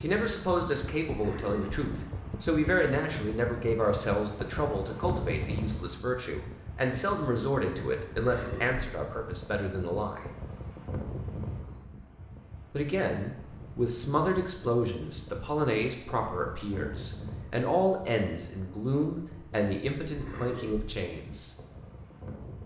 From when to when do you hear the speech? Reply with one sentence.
You can hear the speech from 0.0 to 10.2 s and from 12.7 to 21.5 s.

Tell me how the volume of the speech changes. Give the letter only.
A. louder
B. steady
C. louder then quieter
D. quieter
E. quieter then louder
B.